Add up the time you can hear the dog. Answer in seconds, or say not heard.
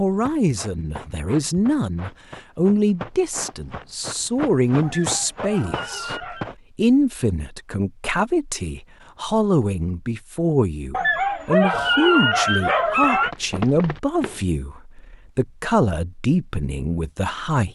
4 s.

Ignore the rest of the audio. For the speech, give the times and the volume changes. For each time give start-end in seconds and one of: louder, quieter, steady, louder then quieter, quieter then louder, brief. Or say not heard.
0.0-17.7 steady.